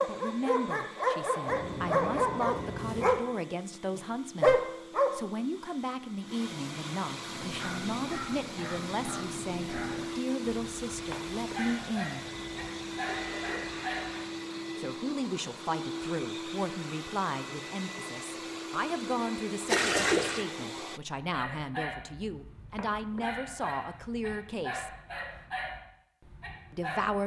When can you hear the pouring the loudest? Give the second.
20 s.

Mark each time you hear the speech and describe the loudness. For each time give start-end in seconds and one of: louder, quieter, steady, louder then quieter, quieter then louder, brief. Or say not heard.
0.0-12.2 steady
14.8-24.9 steady
26.7-27.2 brief.